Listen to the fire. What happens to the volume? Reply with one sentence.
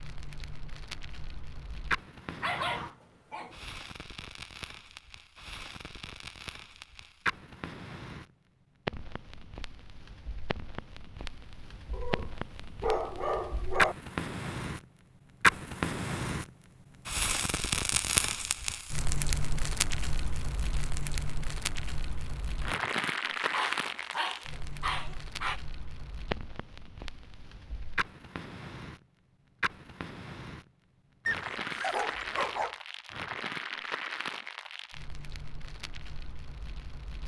The volume of the fire goes up, then down.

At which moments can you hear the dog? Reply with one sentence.
The dog can be heard from 2.4 to 3.8 s, from 11.9 to 13.9 s, from 23.5 to 25.6 s and from 31.2 to 32.8 s.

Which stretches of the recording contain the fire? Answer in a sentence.
You can hear the fire from 0.0 to 37.2 s.